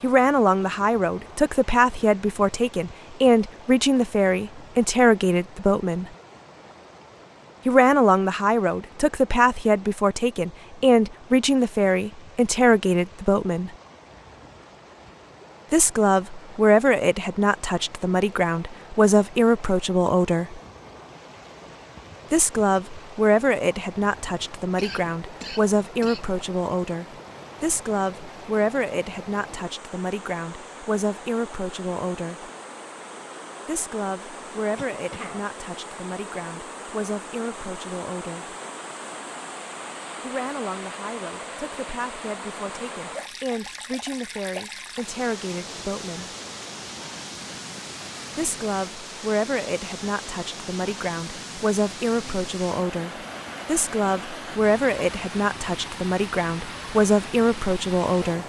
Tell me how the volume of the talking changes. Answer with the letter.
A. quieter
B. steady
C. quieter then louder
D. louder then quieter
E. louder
C.